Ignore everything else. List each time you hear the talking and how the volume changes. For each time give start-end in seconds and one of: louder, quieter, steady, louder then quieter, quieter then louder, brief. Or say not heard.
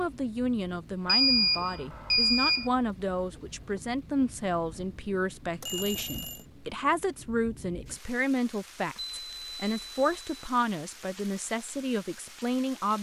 0.0-12.9 steady.